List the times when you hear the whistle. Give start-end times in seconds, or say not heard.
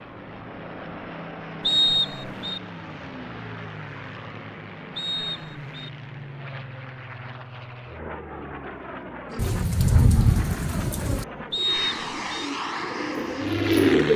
1.6-2.6, 5.0-5.9, 11.5-12.4.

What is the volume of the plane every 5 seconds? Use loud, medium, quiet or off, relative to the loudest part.
medium, medium, loud.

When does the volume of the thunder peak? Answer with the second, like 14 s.
10 s.